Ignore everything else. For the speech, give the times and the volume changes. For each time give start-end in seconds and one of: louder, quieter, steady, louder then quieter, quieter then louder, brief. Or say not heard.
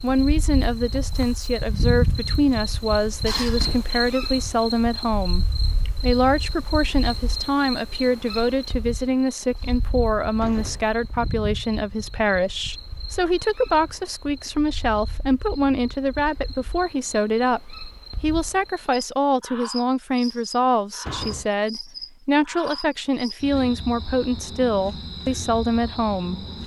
0.0-26.4 steady.